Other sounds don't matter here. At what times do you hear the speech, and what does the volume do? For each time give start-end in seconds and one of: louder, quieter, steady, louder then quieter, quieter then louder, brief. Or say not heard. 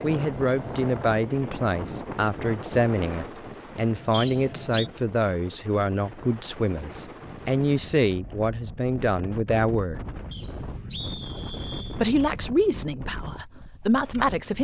0.0-10.0 steady
11.8-14.6 brief.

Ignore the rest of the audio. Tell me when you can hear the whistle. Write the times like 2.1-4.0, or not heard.
4.1-4.9, 10.3-12.0.